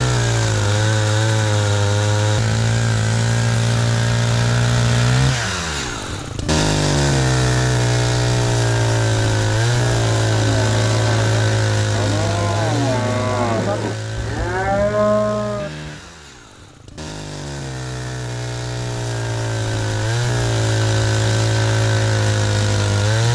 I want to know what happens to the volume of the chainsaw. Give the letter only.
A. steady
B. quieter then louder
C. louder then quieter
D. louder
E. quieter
B.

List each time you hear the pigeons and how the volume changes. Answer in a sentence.
The pigeons can't be heard in this clip.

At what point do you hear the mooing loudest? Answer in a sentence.
The loudest moment of the mooing is at 15 seconds.